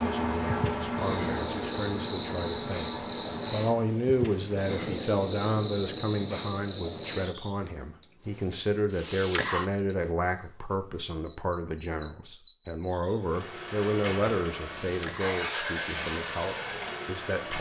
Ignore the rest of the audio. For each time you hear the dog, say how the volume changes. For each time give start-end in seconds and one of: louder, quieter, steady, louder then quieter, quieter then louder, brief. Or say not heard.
not heard.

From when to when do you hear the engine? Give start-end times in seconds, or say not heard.
0.0-3.8, 13.2-17.5.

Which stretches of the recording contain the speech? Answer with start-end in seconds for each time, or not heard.
0.0-17.5.